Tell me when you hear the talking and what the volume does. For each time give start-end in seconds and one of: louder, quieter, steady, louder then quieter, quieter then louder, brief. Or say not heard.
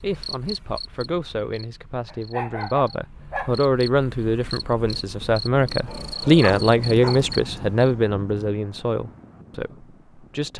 0.0-10.5 louder then quieter.